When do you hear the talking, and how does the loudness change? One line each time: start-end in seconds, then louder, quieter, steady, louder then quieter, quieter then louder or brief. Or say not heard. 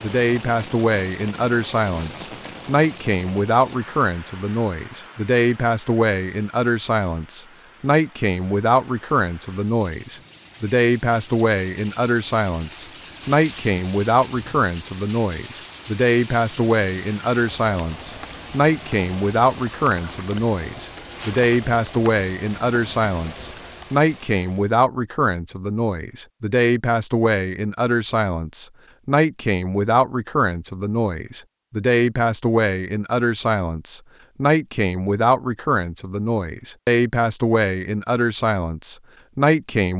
0.0-39.9 steady.